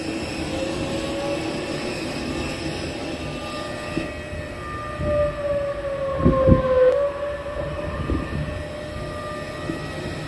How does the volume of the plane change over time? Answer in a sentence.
The loudness of the plane goes down, then up.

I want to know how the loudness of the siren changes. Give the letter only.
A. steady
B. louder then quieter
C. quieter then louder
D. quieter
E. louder
B.